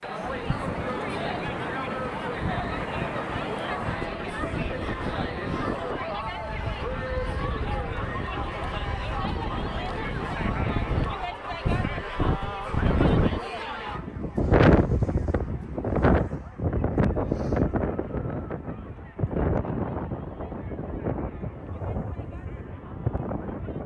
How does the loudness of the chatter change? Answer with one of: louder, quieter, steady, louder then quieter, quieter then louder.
quieter.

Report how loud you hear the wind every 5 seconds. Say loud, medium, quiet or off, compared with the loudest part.
medium, medium, loud, loud, medium.